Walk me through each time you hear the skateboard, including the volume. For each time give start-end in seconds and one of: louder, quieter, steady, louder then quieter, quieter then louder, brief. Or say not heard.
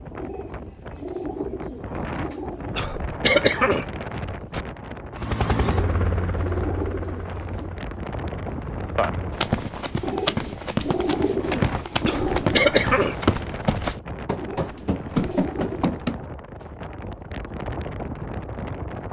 not heard.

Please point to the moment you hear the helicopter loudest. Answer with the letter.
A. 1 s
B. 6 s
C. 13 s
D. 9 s
B.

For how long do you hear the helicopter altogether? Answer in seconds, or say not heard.
4 s.